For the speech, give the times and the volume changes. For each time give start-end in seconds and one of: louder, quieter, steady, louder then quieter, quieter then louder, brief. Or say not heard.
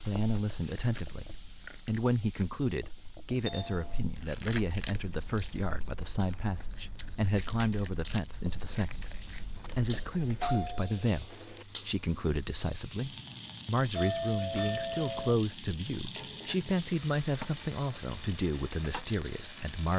0.0-19.9 steady.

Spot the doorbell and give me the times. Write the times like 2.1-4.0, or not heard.
3.5-4.0, 9.6-11.7, 13.9-15.3.